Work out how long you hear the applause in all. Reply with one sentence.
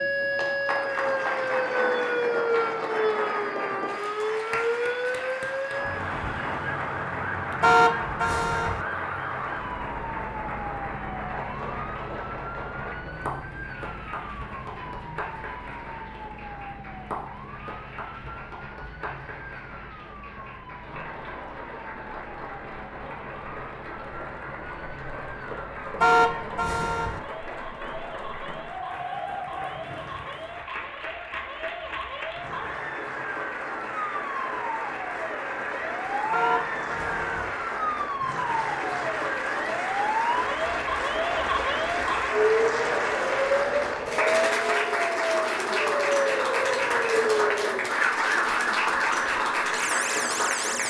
The applause can be heard for 51 seconds in total.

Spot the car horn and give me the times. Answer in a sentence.
You can hear the car horn from 7.6 to 8.8 s, from 26.0 to 27.2 s and from 36.3 to 37.5 s.